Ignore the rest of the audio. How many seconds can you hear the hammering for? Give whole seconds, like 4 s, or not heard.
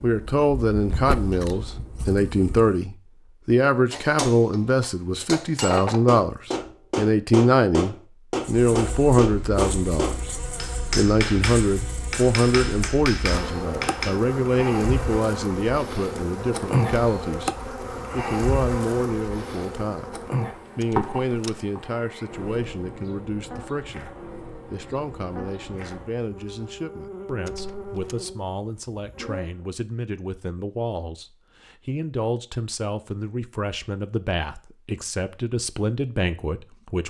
10 s.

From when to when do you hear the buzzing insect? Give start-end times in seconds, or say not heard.
0.0-2.9, 8.4-29.6.